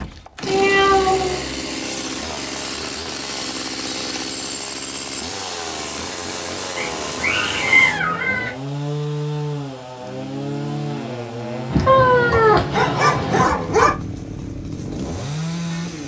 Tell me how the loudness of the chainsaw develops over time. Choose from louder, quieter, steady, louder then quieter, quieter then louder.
steady.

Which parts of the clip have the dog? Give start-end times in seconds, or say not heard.
12.3-13.9.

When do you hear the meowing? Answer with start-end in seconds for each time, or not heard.
0.5-1.4, 6.8-8.6, 11.7-13.4.